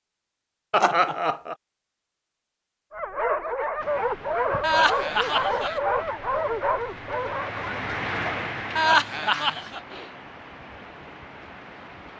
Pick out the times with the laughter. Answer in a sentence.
You can hear the laughter from 0.7 to 1.6 s, from 4.6 to 5.8 s and from 8.8 to 9.8 s.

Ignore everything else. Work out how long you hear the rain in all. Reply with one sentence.
You can hear the rain for 8 seconds altogether.